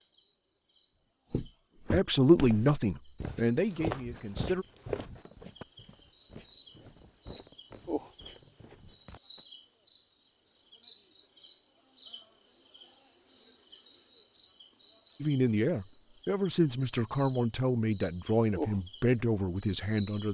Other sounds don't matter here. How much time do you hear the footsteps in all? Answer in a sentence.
The footsteps can be heard for 8 seconds in total.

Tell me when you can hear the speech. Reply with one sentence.
The speech can be heard from 1.9 to 4.7 s and from 15.2 to 20.2 s.